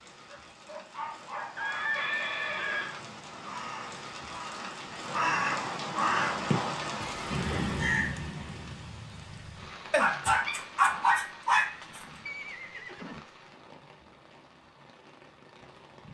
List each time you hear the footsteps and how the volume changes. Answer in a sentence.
You can't hear the footsteps here.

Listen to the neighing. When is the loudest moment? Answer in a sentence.
The volume of the neighing peaks at 2 seconds.